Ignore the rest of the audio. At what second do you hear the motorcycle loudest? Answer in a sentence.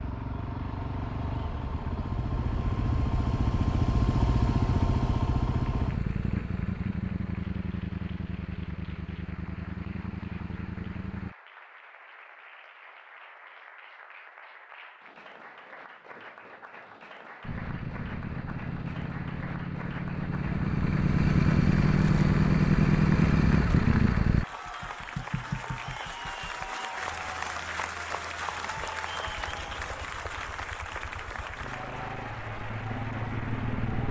The loudest moment of the motorcycle is at 23 seconds.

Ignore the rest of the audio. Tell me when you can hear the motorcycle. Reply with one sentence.
You can hear the motorcycle from 0.0 to 11.3 s, from 17.4 to 24.4 s and from 29.2 to 34.0 s.